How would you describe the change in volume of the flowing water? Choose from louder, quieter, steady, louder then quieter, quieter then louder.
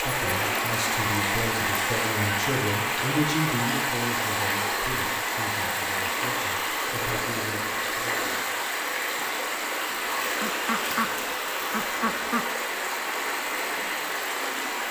steady.